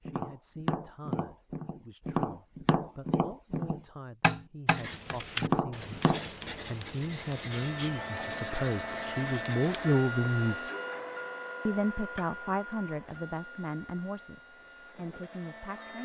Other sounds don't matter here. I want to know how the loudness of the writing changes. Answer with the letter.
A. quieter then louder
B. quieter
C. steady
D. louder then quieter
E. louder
B.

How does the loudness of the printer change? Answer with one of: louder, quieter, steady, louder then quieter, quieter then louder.
quieter.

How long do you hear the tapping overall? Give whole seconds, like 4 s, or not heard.
6 s.